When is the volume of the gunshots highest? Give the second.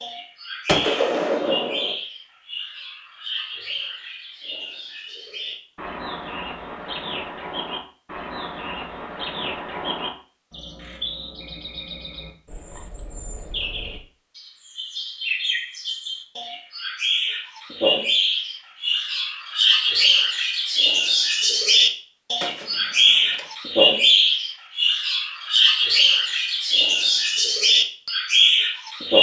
1 s.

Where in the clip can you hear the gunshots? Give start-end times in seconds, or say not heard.
0.7-1.9, 22.4-23.4.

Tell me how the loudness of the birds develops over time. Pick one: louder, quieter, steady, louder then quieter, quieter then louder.
louder.